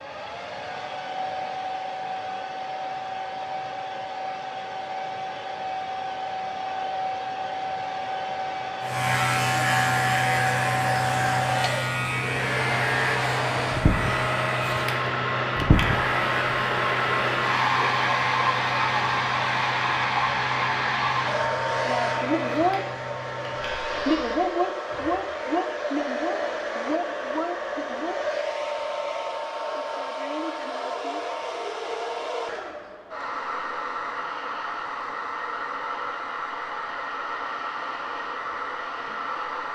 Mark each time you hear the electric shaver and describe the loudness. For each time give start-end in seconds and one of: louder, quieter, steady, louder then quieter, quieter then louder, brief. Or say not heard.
8.8-24.4 quieter.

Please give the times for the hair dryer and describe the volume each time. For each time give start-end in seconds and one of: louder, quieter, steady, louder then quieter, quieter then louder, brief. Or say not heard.
0.0-39.6 louder then quieter.